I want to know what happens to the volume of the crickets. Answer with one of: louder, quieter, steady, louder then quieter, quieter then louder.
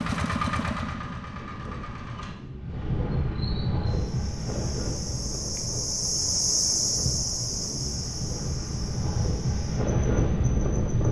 louder then quieter.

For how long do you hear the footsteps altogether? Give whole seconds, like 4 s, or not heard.
not heard.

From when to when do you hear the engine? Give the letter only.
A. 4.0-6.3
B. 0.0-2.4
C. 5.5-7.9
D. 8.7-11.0
B.